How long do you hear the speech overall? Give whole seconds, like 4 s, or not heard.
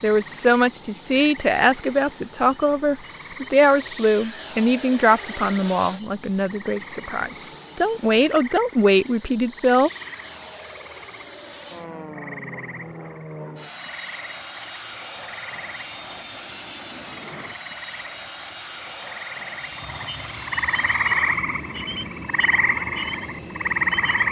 10 s.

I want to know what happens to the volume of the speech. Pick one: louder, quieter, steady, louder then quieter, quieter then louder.
quieter then louder.